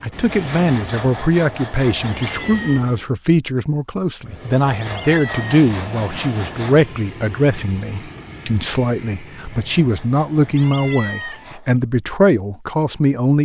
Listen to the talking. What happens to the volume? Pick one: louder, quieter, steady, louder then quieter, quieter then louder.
steady.